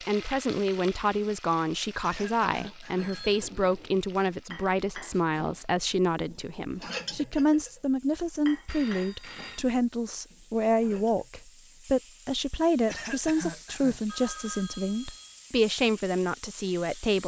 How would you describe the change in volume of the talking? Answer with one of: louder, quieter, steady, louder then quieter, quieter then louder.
steady.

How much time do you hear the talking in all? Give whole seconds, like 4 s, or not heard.
17 s.